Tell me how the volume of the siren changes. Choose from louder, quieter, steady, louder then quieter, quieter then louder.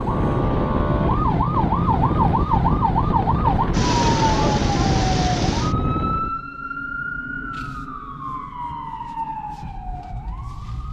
quieter.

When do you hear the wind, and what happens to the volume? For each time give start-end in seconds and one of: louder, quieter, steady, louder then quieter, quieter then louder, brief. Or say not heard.
0.0-6.4 steady.